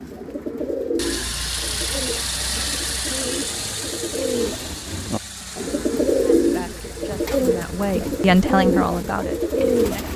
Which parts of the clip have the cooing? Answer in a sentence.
The cooing can be heard from 0.0 to 10.1 s.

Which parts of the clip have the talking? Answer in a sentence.
The talking can be heard from 6.2 to 10.1 s.